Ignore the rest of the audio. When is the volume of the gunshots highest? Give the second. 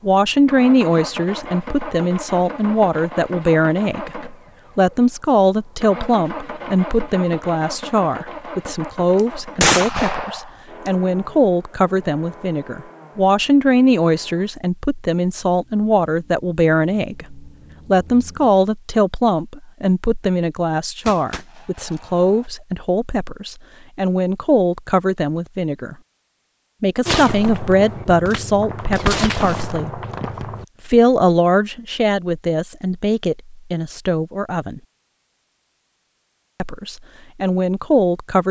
10 s.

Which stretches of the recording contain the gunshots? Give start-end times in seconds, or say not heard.
9.6-10.4, 21.1-22.4, 27.1-30.6.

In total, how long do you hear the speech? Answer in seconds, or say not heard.
35 s.